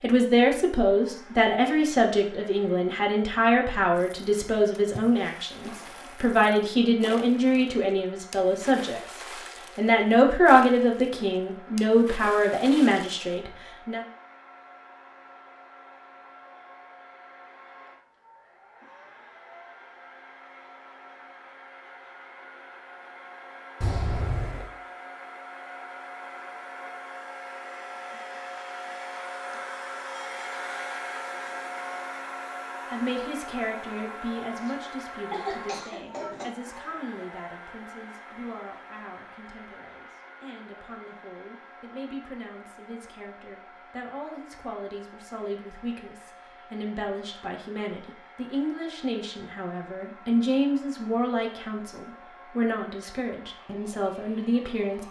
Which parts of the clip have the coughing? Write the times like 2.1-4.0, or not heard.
23.8-24.7, 34.6-36.5.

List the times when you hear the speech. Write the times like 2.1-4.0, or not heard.
0.0-9.2, 9.8-14.0, 32.9-55.0.